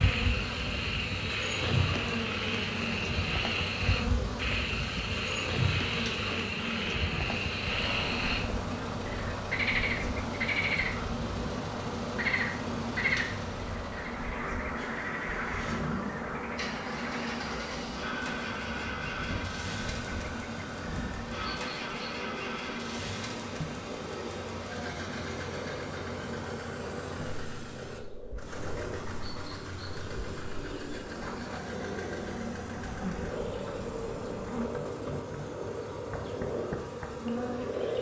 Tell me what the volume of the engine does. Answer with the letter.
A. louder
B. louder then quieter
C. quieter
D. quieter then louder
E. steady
E.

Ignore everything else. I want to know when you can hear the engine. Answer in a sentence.
The engine can be heard from 0.1 to 37.9 s.